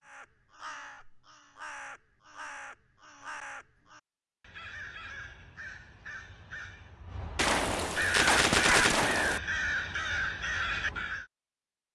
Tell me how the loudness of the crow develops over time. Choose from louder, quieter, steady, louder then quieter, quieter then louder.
louder.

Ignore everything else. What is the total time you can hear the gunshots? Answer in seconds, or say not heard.
2 s.